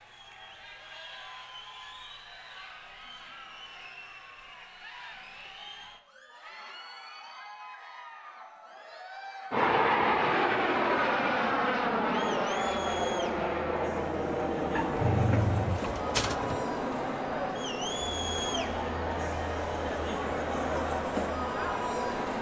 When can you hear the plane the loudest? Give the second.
10 s.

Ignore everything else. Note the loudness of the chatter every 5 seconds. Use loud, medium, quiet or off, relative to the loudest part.
quiet, quiet, medium, loud, loud.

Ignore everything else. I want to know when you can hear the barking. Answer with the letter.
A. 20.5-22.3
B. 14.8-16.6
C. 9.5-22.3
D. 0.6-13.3
B.